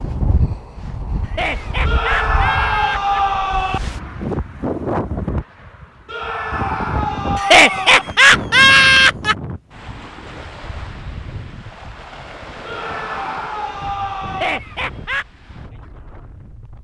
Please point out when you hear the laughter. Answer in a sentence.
You can hear the laughter from 1.2 to 3.2 s, from 7.3 to 9.3 s and from 14.2 to 15.2 s.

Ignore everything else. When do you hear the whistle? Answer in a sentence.
The whistle can't be heard in this clip.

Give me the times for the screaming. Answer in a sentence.
The screaming can be heard from 1.9 to 3.8 s, from 6.0 to 8.1 s and from 12.7 to 14.6 s.